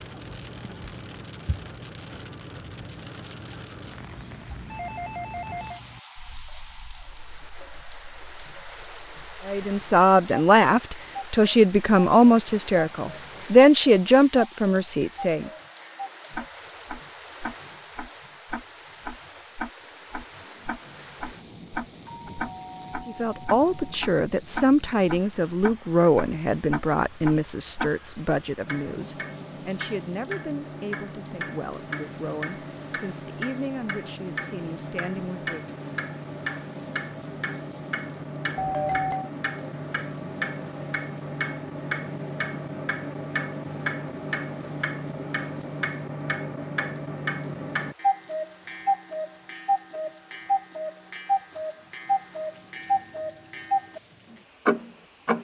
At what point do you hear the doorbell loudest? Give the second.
39 s.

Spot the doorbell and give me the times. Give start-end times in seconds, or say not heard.
4.7-5.8, 22.1-24.0, 38.5-39.3.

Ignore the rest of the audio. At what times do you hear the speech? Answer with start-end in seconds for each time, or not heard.
9.4-15.5, 23.1-35.7.